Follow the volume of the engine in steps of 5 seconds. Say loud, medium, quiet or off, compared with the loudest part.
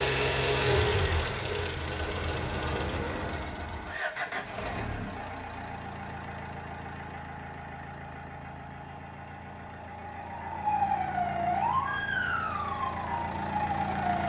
loud, medium, medium.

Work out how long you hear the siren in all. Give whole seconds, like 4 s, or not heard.
4 s.